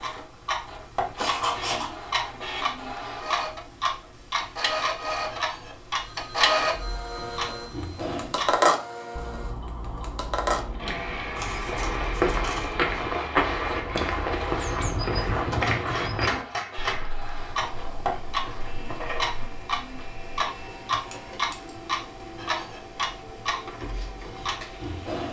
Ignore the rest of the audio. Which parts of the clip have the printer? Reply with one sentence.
You can hear the printer from 0.0 to 25.2 s.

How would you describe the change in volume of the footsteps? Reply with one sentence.
The volume of the footsteps goes down.